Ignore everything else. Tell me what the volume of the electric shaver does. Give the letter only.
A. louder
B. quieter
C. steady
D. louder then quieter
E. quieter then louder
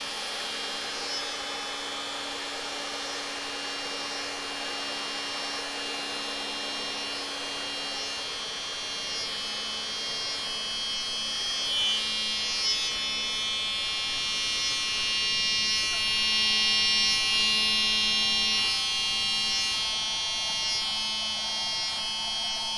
A.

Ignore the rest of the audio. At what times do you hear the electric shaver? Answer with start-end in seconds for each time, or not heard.
0.0-22.7.